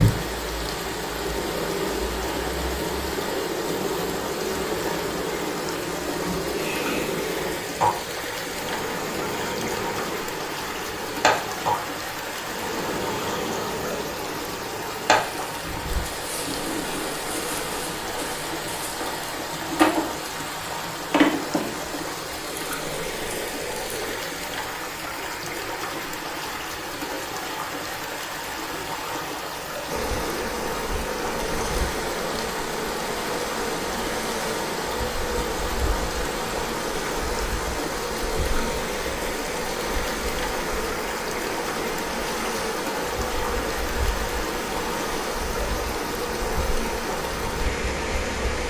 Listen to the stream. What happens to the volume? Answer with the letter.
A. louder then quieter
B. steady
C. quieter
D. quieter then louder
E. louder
B.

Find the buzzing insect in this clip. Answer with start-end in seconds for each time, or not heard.
0.0-24.1, 29.9-48.6.